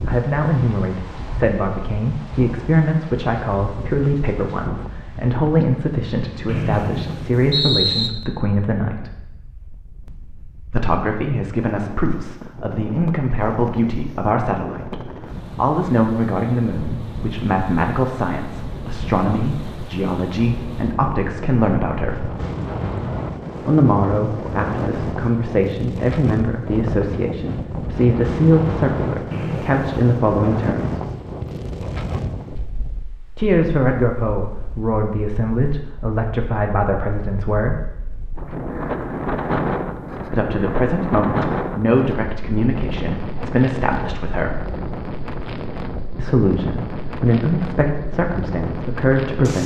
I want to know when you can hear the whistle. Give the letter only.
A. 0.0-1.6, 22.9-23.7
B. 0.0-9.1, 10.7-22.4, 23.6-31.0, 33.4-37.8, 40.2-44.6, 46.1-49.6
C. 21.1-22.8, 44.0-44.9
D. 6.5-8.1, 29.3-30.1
D.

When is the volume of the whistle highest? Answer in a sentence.
The loudest moment of the whistle is at 8 seconds.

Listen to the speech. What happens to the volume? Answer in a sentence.
The loudness of the speech stays about the same.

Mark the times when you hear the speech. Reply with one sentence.
The speech can be heard from 0.0 to 9.1 s, from 10.7 to 22.4 s, from 23.6 to 31.0 s, from 33.4 to 37.8 s, from 40.2 to 44.6 s and from 46.1 to 49.6 s.